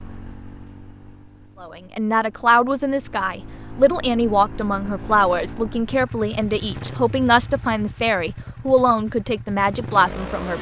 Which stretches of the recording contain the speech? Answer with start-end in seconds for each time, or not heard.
1.6-10.5.